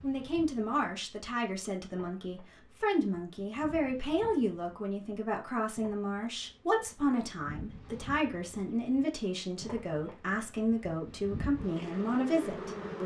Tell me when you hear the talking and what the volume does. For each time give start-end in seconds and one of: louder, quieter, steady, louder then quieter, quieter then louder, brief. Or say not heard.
0.0-13.0 steady.